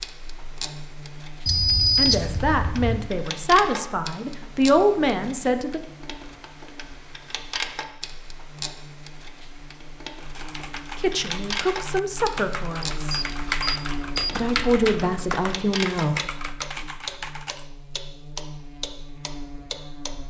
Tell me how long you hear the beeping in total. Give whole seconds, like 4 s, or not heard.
3 s.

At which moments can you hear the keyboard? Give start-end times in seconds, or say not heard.
10.2-17.6.